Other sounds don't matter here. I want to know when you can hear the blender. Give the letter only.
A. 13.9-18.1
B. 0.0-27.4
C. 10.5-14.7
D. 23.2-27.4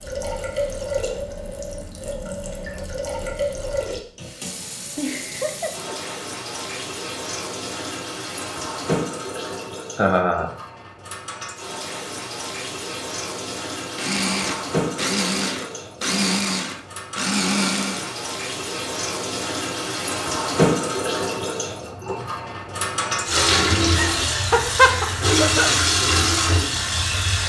A.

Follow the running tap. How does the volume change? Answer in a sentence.
The volume of the running tap goes up.